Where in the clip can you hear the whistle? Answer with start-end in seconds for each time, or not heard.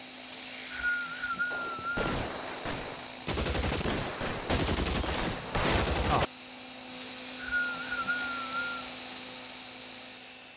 0.3-2.0, 7.0-8.7.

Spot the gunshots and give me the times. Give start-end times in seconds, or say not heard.
1.5-6.3.